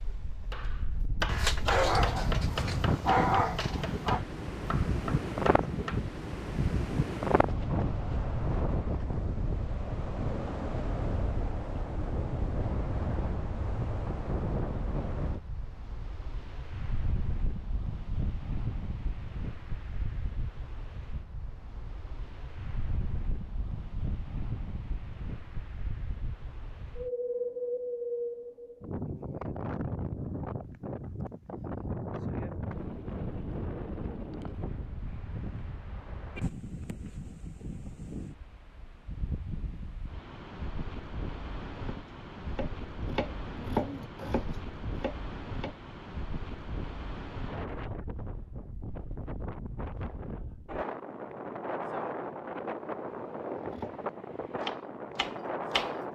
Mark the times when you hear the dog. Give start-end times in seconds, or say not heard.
1.2-4.2.